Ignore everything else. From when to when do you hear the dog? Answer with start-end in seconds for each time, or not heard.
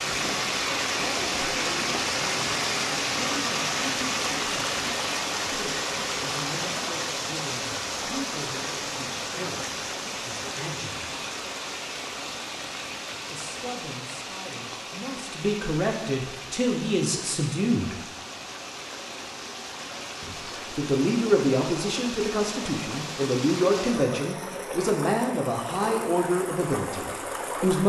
not heard.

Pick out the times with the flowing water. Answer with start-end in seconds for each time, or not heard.
0.0-27.8.